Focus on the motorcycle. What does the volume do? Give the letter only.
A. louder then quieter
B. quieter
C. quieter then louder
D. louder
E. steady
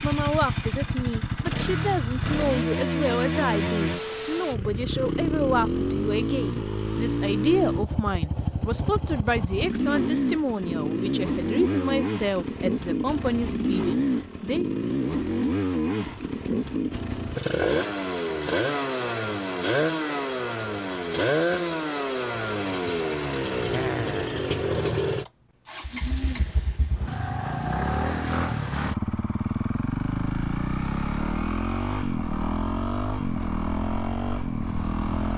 E.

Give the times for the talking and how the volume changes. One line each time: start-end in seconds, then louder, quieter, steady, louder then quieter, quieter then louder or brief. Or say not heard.
0.0-14.7 steady.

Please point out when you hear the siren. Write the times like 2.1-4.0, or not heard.
not heard.